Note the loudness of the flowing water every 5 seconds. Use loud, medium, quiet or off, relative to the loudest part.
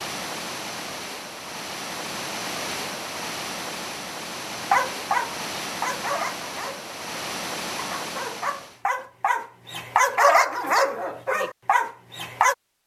loud, loud, off.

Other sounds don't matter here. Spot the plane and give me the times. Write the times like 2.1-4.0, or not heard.
not heard.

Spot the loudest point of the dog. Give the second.
10 s.